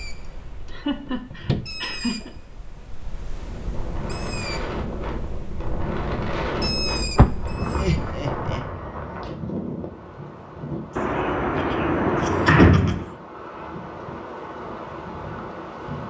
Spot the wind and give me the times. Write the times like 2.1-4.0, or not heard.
3.4-16.0.